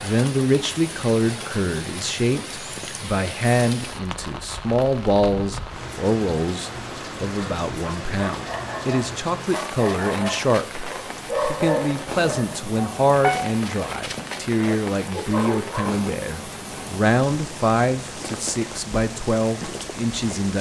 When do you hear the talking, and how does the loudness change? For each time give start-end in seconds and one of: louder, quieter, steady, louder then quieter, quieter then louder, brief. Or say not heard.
0.0-20.5 steady.